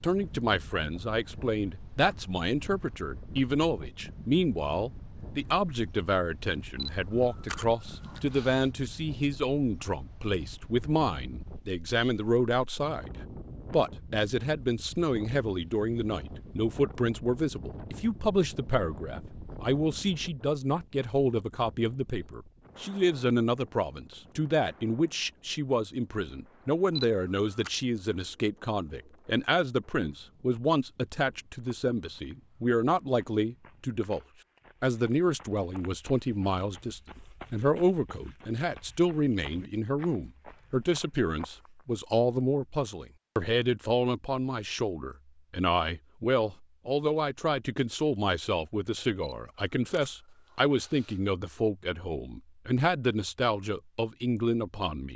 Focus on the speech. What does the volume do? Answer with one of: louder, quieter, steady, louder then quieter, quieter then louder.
steady.